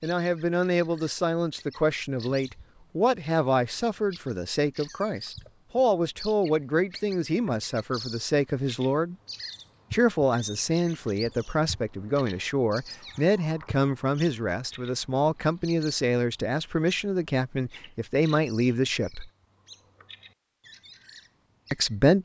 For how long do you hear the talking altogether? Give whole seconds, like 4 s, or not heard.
19 s.